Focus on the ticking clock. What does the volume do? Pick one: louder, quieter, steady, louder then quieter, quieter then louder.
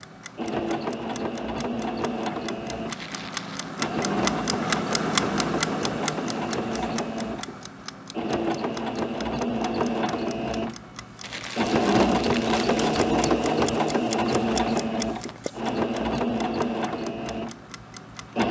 louder then quieter.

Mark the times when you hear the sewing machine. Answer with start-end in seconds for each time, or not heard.
0.3-18.4.